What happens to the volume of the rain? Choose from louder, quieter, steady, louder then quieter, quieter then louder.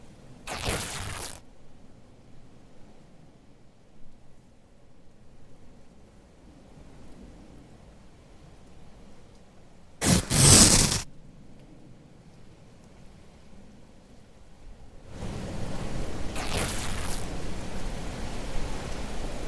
louder.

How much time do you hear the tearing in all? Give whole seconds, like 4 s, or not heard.
3 s.